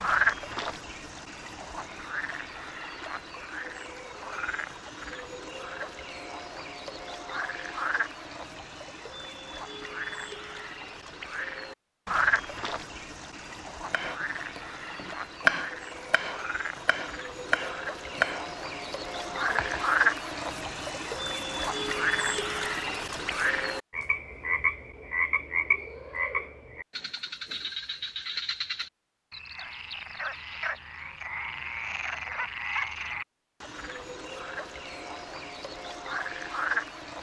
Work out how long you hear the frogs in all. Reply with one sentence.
You can hear the frogs for 37 seconds altogether.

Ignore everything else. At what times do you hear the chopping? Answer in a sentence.
The chopping can be heard from 13.9 to 19.9 s.